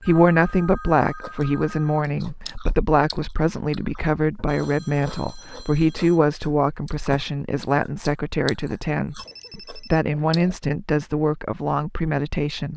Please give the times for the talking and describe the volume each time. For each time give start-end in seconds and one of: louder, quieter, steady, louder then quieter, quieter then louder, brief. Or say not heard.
0.0-12.7 steady.